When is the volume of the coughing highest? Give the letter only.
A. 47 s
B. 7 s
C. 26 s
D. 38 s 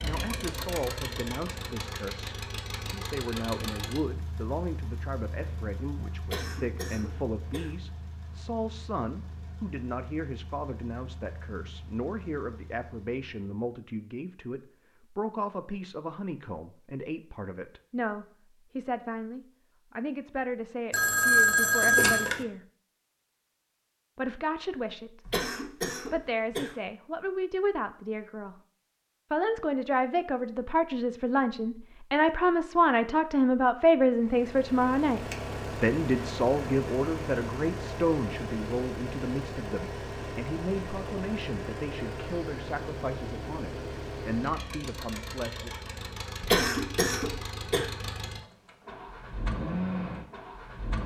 A.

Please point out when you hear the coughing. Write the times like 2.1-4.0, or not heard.
6.2-7.7, 25.2-26.8, 46.4-47.9.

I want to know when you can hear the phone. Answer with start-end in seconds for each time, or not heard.
20.9-22.4.